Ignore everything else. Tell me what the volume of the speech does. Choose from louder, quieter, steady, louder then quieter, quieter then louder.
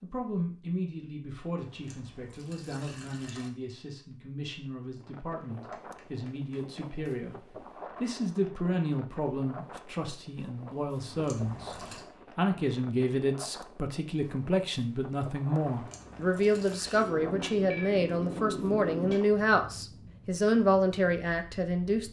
louder.